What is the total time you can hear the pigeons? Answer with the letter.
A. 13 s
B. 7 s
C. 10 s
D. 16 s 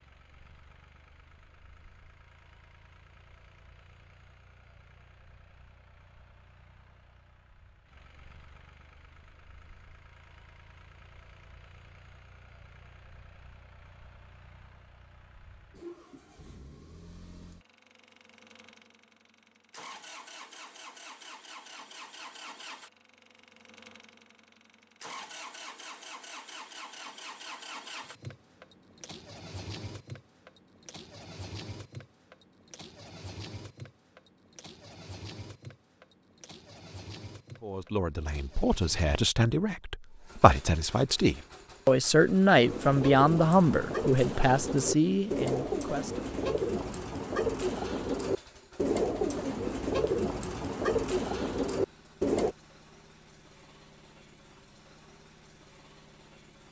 C.